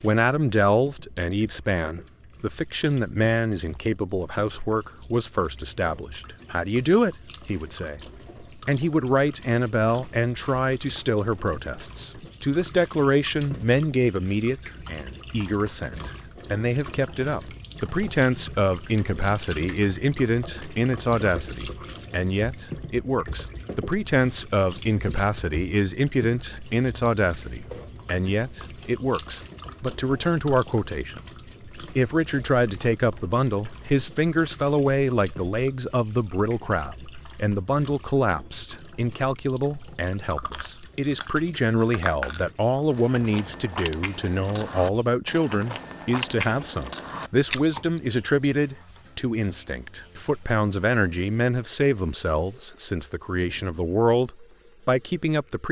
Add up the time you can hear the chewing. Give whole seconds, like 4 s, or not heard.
8 s.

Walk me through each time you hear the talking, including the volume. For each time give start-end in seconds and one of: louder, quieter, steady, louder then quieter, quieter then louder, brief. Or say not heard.
0.0-55.6 steady.